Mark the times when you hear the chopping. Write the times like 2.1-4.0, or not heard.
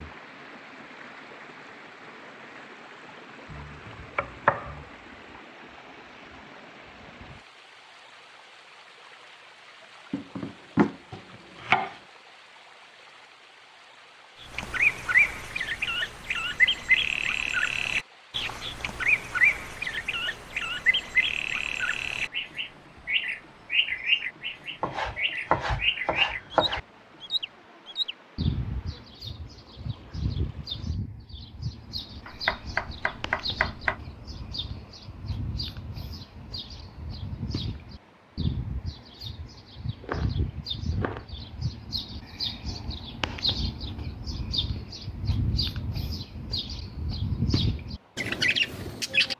3.5-4.8, 10.1-12.0, 24.8-26.8, 32.2-34.0, 40.0-41.2.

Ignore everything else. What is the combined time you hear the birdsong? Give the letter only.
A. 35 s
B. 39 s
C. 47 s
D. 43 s
A.